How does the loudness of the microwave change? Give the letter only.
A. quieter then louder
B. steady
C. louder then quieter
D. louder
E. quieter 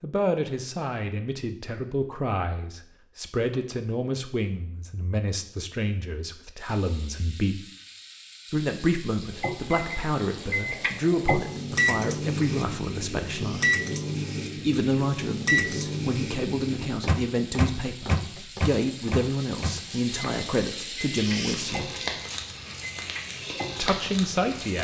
E.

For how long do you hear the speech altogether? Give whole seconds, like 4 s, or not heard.
21 s.